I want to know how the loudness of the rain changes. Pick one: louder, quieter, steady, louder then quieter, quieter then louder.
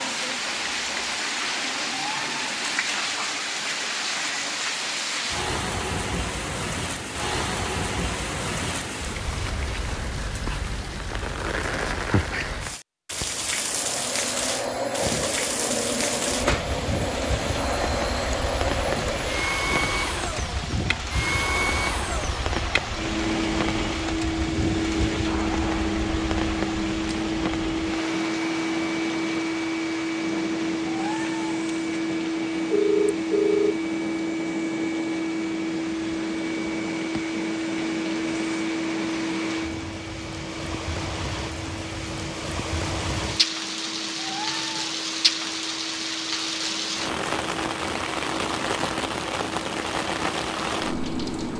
quieter then louder.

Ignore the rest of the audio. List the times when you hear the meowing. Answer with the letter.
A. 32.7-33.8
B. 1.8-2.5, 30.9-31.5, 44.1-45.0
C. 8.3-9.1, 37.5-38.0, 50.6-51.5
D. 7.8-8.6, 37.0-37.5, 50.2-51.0
B.